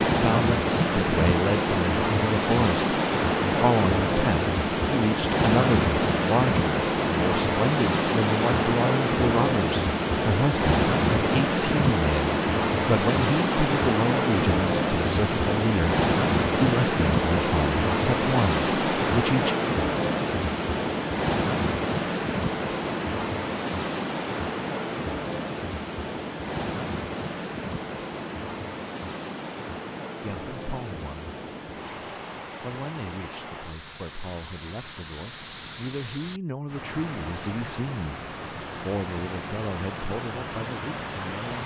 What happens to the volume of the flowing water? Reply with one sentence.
The volume of the flowing water goes down.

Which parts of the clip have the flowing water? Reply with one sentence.
The flowing water can be heard from 0.0 to 41.6 s.